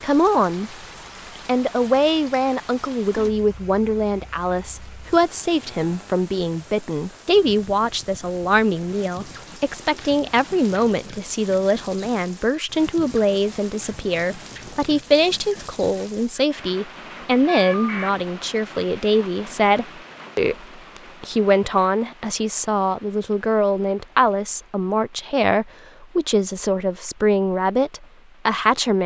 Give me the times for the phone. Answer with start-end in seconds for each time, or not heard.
17.4-18.1.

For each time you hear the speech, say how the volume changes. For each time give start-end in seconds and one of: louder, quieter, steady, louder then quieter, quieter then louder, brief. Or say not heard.
0.0-0.8 brief
1.4-29.0 steady.